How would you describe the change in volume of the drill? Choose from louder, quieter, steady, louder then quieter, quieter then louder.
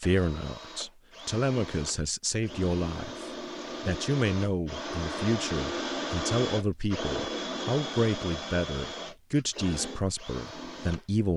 louder then quieter.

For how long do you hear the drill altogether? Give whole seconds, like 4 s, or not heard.
11 s.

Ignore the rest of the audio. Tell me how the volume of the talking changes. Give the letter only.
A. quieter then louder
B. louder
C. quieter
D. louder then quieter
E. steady
E.